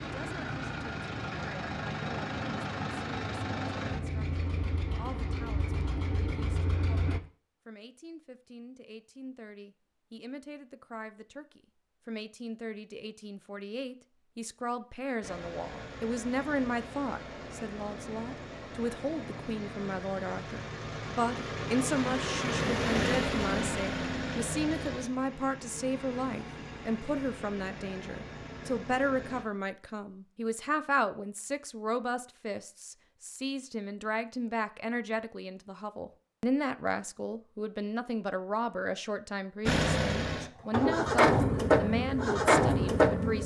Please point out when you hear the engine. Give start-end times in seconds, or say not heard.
0.0-7.2, 15.2-29.4, 39.6-43.4.